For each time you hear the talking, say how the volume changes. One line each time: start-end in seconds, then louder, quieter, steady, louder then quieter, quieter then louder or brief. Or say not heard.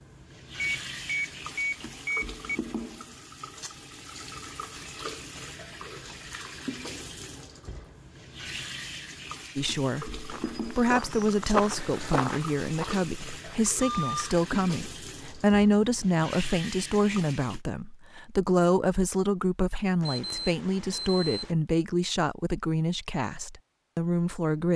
9.6-24.7 steady.